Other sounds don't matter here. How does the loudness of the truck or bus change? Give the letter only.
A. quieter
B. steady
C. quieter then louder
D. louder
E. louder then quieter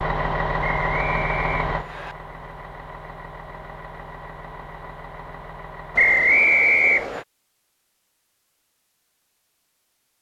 A.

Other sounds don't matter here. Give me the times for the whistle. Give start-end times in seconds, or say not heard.
0.6-2.1, 6.0-7.2.